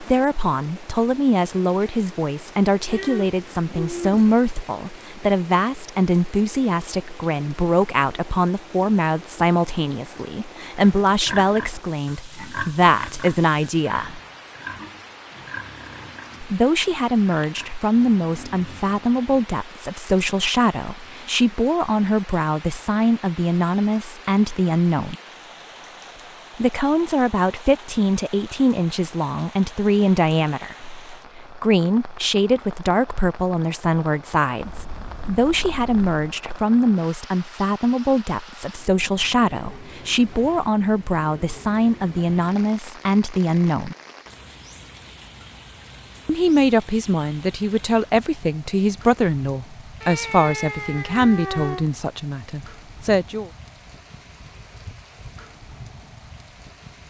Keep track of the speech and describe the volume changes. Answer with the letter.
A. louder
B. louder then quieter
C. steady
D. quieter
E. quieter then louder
C.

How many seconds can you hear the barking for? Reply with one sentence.
You can't hear the barking here.